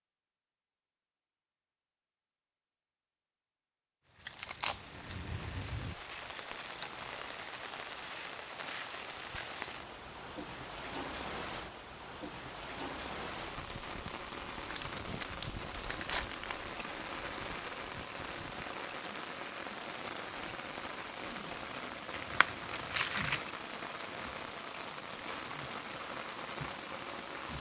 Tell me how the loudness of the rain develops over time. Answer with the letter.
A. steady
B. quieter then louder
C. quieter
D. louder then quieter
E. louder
A.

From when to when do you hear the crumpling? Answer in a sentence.
The crumpling can be heard from 4.2 to 5.2 s, from 14.1 to 16.6 s and from 22.1 to 23.4 s.